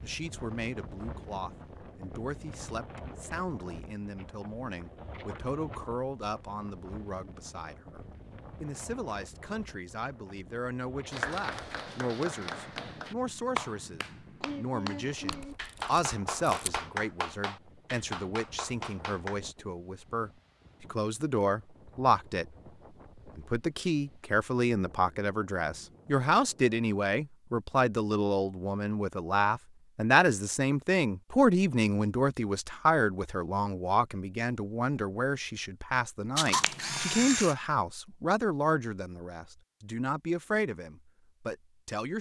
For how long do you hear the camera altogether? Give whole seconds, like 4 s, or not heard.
3 s.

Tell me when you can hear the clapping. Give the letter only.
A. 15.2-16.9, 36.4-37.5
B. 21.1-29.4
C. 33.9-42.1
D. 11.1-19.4
D.